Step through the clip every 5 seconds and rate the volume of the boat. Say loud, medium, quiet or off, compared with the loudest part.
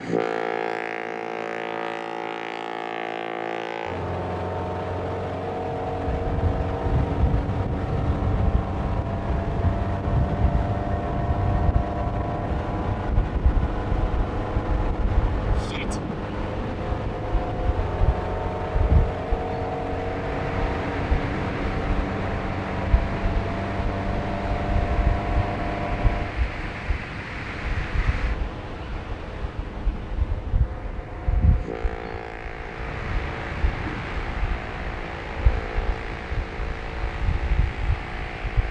loud, loud, loud, loud, loud, medium, medium, medium.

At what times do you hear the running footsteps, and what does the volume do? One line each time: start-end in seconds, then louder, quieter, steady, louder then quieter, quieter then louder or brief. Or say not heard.
not heard.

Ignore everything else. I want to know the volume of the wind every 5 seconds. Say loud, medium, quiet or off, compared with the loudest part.
off, loud, loud, medium, loud, loud, loud, loud.